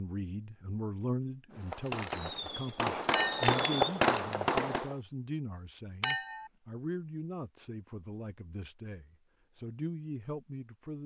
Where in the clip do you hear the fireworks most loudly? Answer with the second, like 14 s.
4 s.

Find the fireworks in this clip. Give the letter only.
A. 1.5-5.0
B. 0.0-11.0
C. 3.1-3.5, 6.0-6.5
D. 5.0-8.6
A.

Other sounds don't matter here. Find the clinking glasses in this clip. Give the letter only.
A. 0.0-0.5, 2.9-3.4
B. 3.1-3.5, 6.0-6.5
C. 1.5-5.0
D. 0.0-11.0
B.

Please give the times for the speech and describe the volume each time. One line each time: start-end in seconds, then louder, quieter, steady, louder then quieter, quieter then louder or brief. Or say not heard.
0.0-11.0 steady.